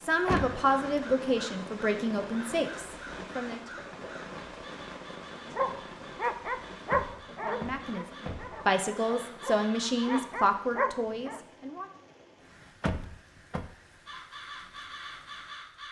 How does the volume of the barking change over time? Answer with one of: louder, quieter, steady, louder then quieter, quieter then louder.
quieter then louder.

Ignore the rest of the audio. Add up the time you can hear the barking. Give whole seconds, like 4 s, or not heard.
6 s.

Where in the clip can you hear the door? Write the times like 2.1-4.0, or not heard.
0.2-1.1, 6.9-8.6, 12.8-13.7.